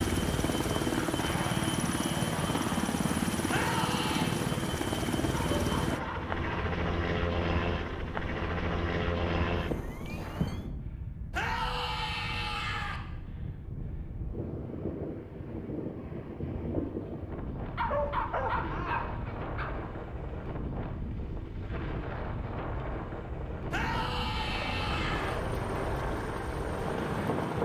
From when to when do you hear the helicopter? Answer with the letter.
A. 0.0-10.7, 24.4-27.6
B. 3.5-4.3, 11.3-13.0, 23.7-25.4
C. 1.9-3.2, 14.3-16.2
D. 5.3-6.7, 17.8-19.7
A.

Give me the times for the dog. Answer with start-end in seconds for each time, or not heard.
5.3-6.7, 17.8-19.7.